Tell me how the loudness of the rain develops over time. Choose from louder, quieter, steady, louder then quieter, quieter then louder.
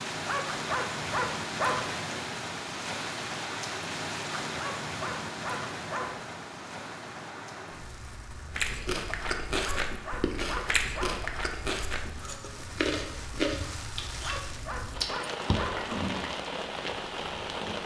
quieter then louder.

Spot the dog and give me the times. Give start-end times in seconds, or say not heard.
0.2-1.9, 4.5-6.3, 9.6-11.3, 14.2-15.9.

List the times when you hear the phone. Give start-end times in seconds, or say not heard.
not heard.